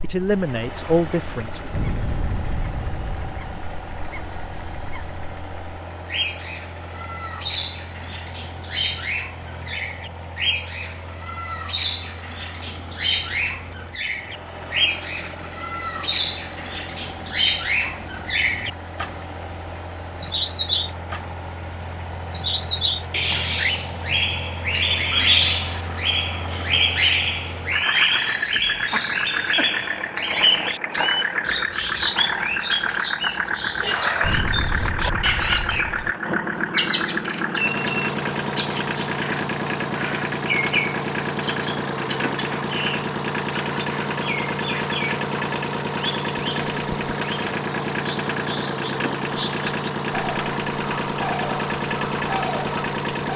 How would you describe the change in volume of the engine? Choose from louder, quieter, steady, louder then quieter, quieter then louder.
louder.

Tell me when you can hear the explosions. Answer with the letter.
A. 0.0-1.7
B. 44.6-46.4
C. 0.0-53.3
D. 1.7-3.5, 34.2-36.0
D.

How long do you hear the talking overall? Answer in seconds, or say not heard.
2 s.